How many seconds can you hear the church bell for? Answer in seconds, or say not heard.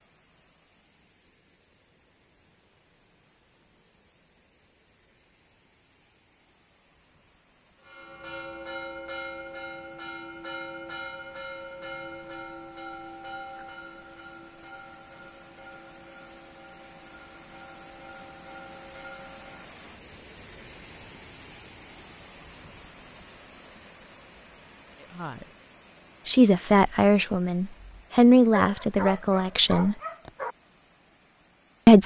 12 s.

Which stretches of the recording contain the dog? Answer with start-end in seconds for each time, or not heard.
28.6-30.6.